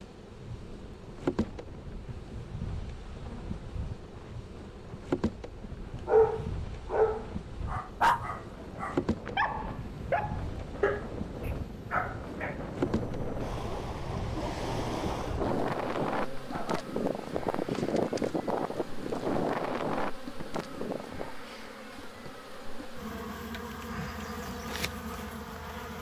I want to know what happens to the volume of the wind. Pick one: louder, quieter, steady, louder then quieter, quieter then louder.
louder.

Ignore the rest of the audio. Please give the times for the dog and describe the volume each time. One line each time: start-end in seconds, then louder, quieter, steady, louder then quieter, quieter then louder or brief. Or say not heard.
5.6-16.9 quieter.